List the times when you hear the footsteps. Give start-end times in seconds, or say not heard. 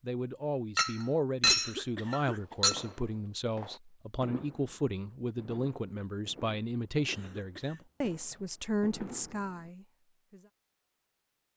not heard.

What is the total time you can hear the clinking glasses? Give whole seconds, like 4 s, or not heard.
2 s.